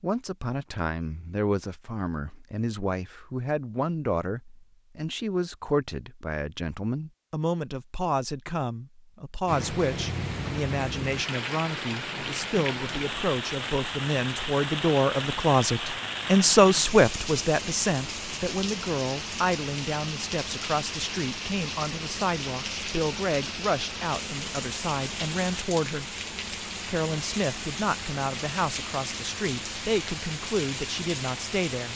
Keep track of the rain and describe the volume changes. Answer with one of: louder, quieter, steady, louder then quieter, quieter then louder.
steady.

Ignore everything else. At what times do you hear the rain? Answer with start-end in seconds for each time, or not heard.
9.4-31.9.